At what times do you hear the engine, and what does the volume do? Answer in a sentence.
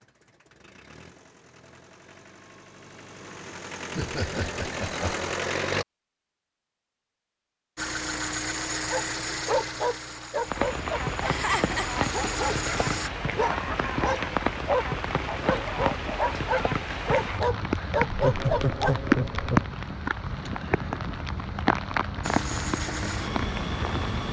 The engine can be heard from 0.0 to 5.8 s, getting louder; from 7.8 to 13.1 s, getting quieter then louder; and briefly from 22.2 to 24.2 s.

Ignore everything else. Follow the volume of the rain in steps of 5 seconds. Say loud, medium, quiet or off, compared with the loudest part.
off, off, loud, loud, loud.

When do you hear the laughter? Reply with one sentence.
The laughter can be heard from 4.0 to 5.3 s, from 11.2 to 12.1 s and from 18.1 to 19.6 s.